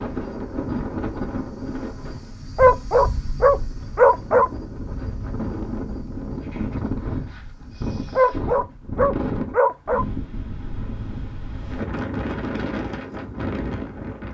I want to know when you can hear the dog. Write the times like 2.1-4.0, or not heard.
2.5-4.5, 8.2-10.1.